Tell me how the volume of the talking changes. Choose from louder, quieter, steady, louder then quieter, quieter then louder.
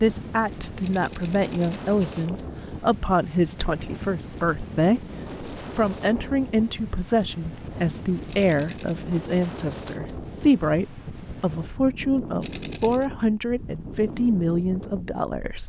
steady.